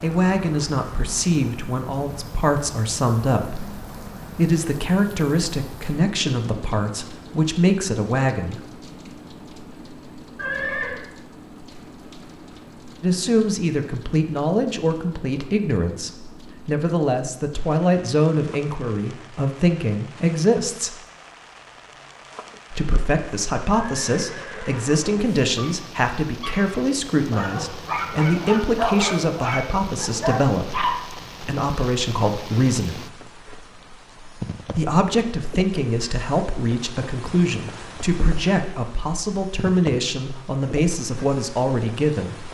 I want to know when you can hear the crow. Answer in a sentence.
You can't hear the crow here.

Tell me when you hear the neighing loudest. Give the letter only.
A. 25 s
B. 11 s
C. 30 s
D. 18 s
B.